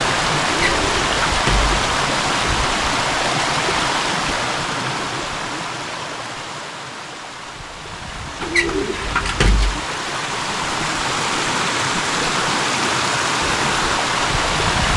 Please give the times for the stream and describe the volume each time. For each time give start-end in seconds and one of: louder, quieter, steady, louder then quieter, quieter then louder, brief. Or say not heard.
0.0-14.9 quieter then louder.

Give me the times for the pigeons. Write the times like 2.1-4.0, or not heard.
0.5-1.8, 8.4-9.8.